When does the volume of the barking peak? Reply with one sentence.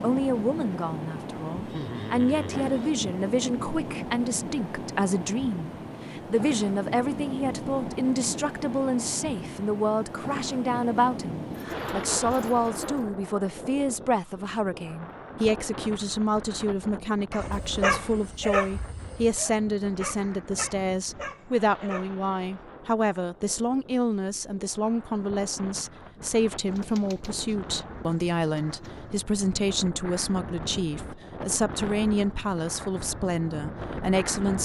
The loudest moment of the barking is at 18 seconds.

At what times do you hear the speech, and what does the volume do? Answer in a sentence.
You can hear the speech from 0.0 to 34.5 s, at a steady volume.